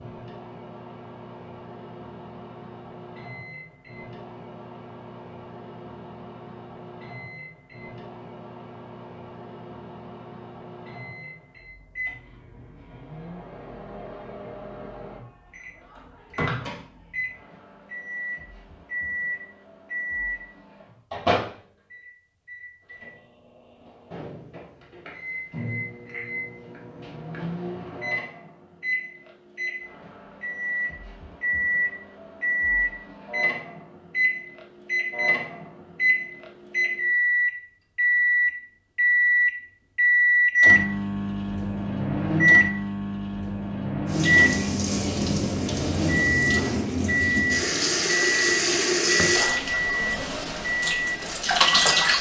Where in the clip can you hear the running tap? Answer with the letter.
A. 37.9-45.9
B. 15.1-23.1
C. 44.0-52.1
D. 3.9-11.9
C.